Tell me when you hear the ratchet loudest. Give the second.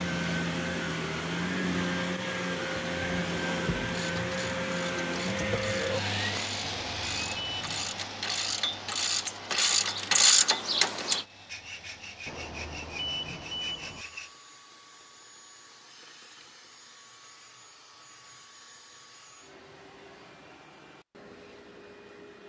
10 s.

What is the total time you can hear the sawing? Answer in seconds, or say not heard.
3 s.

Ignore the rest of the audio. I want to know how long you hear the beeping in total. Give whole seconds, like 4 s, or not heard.
3 s.